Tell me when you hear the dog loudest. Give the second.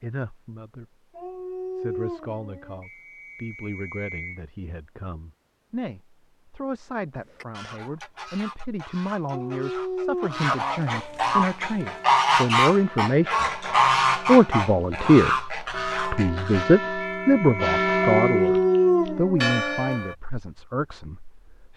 19 s.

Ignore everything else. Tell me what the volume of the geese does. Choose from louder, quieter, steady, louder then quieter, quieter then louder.
louder then quieter.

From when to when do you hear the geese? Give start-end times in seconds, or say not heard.
7.2-16.6.